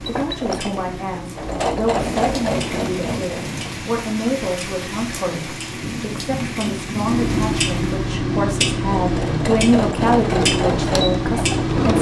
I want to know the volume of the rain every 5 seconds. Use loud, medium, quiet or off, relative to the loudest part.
loud, loud, off.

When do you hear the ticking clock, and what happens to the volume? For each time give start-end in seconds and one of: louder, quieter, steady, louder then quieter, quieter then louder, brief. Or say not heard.
0.0-11.9 louder.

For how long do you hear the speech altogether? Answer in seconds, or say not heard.
12 s.